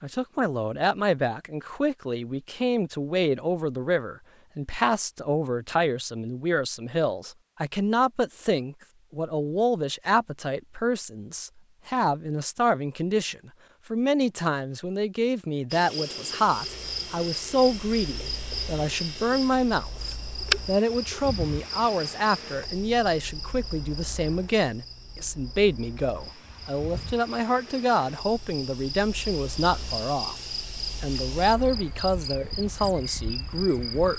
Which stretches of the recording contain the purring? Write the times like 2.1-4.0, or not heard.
not heard.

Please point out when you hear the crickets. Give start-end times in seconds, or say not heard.
15.7-34.1.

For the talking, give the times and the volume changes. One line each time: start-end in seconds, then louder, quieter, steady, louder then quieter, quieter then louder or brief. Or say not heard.
0.0-34.1 steady.